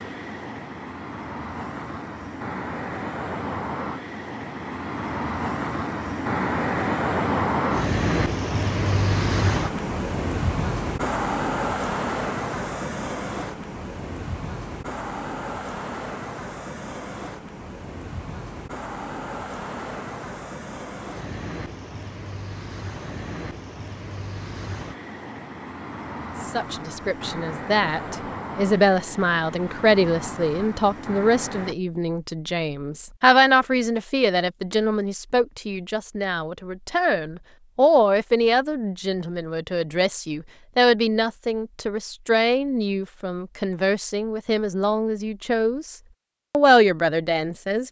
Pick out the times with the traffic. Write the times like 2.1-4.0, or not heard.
0.0-31.8.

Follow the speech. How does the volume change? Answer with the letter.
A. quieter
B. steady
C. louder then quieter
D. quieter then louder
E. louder
B.